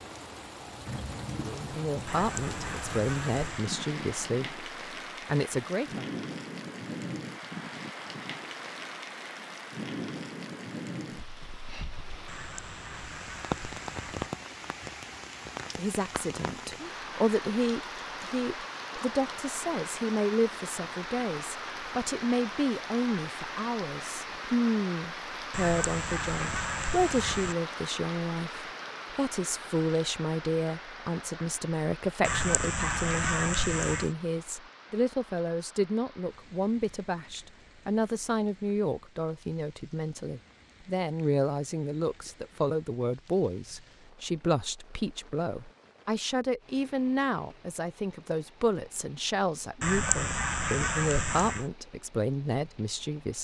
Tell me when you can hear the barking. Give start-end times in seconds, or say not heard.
not heard.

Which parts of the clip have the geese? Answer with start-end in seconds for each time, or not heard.
2.0-3.7, 12.2-14.3, 25.5-27.6, 32.2-34.1, 49.8-51.6.